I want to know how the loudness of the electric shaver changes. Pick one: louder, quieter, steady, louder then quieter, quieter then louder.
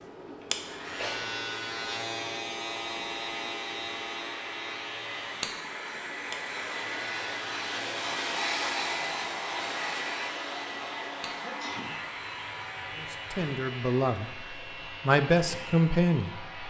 quieter.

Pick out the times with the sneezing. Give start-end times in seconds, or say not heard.
0.9-1.4, 11.4-11.9.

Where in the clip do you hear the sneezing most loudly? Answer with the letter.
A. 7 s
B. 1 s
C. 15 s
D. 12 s
B.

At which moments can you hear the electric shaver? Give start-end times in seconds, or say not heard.
0.0-16.6.